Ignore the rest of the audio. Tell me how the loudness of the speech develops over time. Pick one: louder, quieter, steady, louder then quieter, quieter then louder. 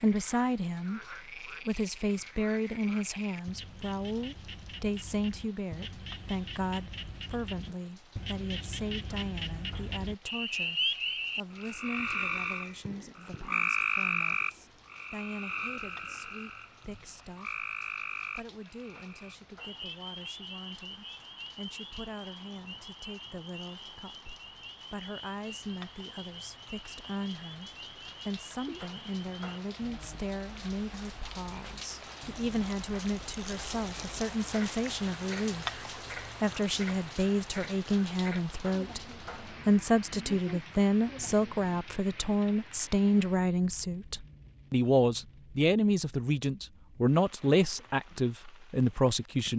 quieter then louder.